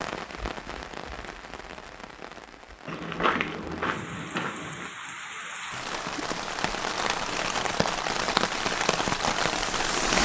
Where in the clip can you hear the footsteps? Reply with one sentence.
The footsteps can be heard from 2.9 to 4.9 s.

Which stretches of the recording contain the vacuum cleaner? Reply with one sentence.
The vacuum cleaner can't be heard in this clip.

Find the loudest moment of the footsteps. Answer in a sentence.
The loudest moment of the footsteps is at 3 seconds.